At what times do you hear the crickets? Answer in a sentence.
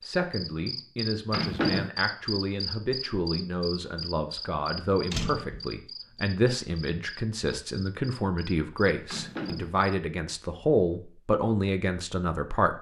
The crickets can be heard from 0.0 to 9.9 s.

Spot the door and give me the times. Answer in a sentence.
The door can be heard from 1.3 to 1.9 s, from 5.1 to 5.7 s and from 9.1 to 9.8 s.